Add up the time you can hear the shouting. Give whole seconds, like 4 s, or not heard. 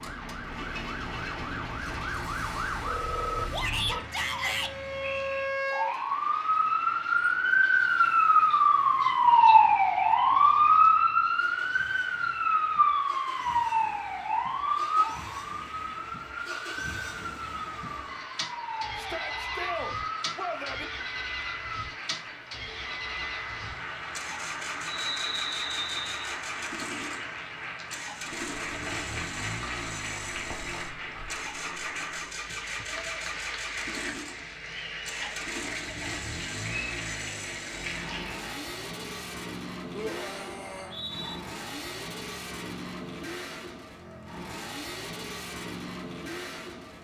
4 s.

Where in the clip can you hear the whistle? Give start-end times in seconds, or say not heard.
4.3-5.5, 24.9-26.4, 40.6-41.4.